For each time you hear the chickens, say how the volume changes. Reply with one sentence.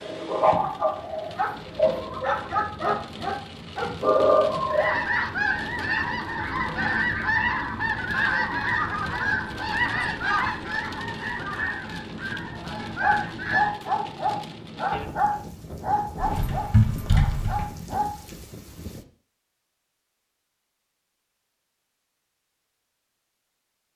The chickens can be heard from 4.7 to 13.8 s, getting quieter.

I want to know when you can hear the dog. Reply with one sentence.
The dog can be heard from 0.0 to 5.0 s and from 13.0 to 18.1 s.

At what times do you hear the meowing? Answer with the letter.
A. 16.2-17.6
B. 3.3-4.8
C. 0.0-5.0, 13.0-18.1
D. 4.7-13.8
A.